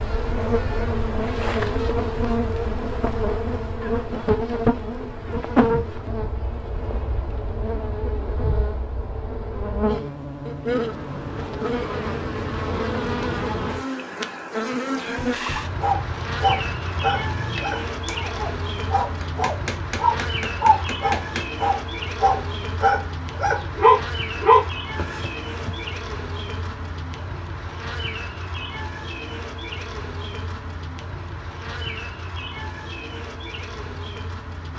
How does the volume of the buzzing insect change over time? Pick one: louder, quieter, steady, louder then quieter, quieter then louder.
quieter.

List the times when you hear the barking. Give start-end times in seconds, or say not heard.
15.8-25.7.